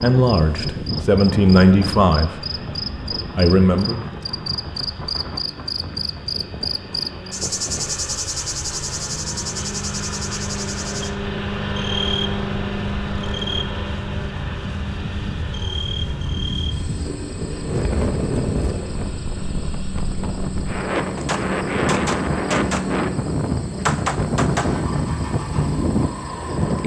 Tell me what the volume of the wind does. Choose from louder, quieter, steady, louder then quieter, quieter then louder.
quieter then louder.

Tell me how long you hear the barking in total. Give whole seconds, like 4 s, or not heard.
not heard.